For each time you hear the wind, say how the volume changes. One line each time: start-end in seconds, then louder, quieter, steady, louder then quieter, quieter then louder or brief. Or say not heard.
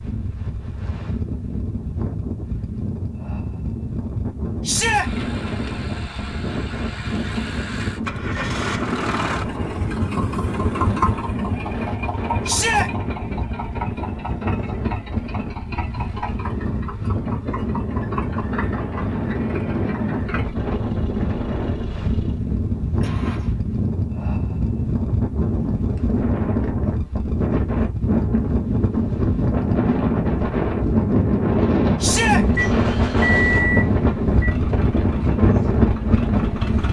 0.0-36.8 louder.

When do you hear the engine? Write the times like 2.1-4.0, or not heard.
4.8-23.6, 32.3-36.8.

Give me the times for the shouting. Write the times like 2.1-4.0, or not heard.
4.7-5.1, 12.4-12.9, 32.0-32.5.